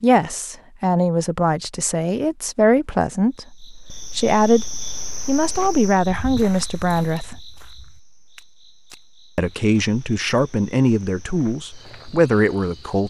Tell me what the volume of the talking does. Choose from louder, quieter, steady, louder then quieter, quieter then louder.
steady.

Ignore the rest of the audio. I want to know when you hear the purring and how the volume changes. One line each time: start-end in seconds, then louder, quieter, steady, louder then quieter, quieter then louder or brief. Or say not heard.
not heard.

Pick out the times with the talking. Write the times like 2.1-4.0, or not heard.
0.0-7.3, 9.3-13.0.